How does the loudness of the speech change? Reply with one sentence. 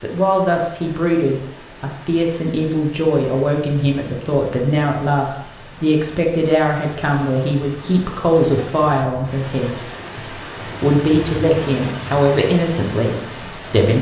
The volume of the speech stays about the same.